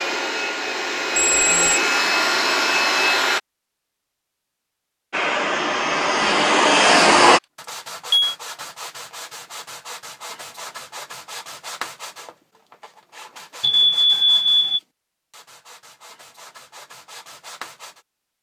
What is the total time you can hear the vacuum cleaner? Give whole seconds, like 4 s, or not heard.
6 s.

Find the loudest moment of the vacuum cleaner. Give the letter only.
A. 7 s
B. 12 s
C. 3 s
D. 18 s
A.